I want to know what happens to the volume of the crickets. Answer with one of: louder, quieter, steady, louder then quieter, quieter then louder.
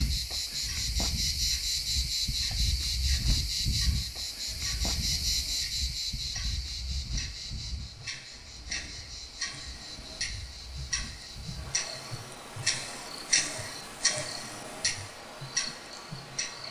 quieter.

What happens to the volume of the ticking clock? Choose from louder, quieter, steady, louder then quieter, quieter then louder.
louder.